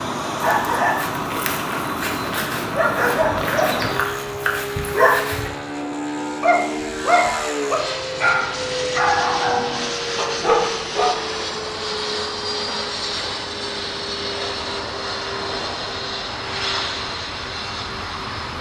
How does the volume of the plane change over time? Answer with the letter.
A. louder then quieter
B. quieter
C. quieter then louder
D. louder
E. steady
E.